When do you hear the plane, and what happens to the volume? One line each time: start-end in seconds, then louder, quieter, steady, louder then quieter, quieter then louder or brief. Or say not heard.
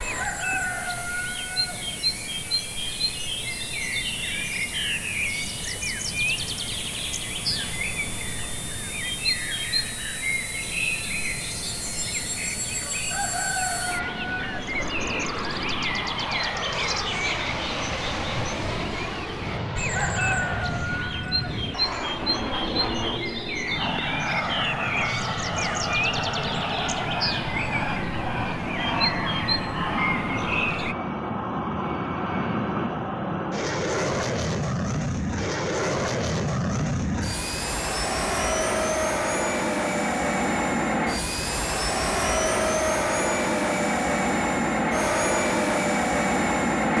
0.0-46.9 louder.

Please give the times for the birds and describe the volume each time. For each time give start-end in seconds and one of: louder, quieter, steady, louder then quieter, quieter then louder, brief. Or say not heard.
0.0-30.9 steady.